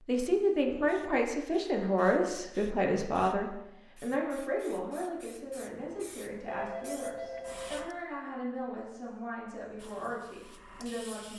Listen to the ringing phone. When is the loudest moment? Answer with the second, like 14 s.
7 s.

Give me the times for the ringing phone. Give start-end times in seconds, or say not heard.
6.5-8.0.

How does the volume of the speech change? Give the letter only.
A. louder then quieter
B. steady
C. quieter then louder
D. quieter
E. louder
D.